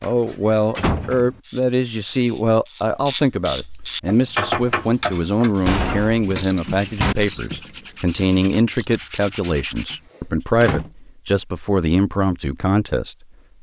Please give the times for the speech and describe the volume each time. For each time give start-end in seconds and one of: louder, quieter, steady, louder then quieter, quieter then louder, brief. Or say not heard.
0.0-13.2 steady.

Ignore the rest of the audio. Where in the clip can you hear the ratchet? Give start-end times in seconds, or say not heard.
1.4-9.3.